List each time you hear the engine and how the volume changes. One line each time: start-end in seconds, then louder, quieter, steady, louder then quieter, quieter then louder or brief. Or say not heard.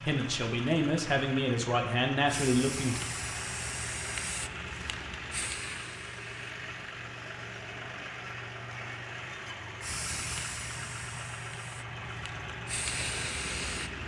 0.0-14.0 steady.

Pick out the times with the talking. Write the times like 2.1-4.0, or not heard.
0.0-3.0.